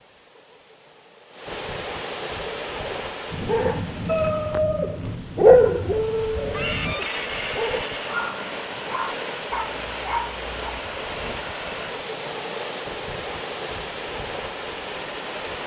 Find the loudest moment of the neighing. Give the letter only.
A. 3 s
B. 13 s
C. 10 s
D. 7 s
D.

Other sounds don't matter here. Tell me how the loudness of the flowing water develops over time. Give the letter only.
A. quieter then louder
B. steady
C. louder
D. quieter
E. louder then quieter
A.